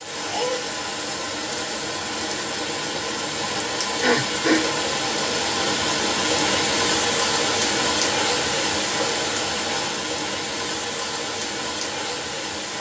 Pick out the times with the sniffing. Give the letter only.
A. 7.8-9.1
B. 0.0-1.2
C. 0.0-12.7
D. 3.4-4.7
D.